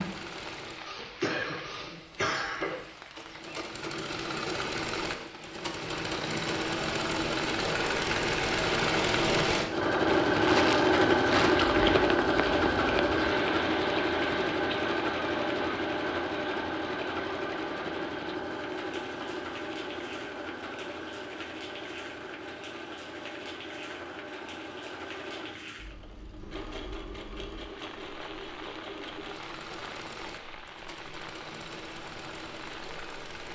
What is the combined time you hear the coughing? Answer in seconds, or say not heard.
2 s.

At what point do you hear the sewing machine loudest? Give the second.
11 s.